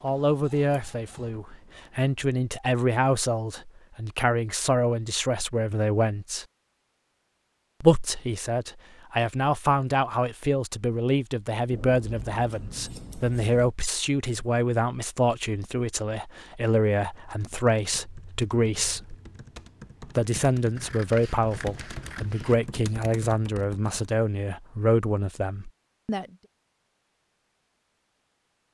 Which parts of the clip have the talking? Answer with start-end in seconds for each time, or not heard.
0.0-6.5, 7.8-19.1, 20.1-26.3.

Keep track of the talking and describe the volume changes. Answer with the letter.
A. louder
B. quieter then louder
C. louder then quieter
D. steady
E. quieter
D.